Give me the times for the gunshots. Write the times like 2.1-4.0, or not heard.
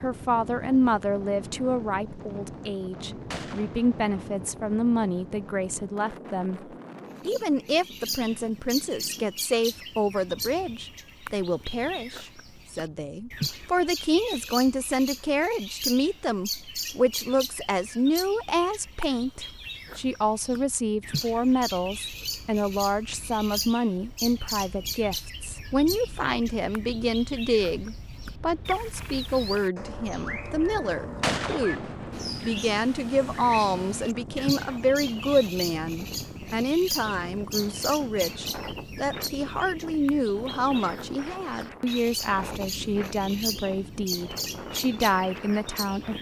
3.3-4.2, 31.2-32.3.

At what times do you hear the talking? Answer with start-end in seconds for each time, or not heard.
0.0-6.6, 7.2-46.1.